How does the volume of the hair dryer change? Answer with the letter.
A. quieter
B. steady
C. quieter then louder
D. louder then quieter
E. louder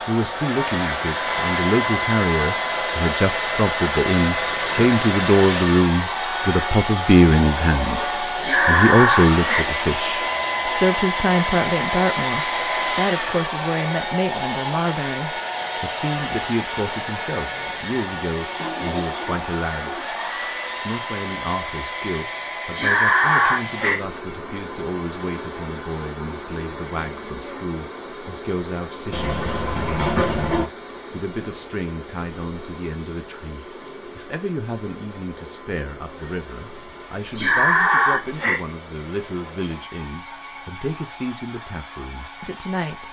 A.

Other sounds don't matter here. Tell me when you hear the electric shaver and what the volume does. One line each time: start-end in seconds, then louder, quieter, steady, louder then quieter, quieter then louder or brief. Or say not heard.
not heard.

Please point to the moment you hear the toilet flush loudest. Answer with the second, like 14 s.
30 s.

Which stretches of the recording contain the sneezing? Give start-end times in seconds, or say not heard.
8.4-9.7, 22.8-24.0, 37.4-38.6.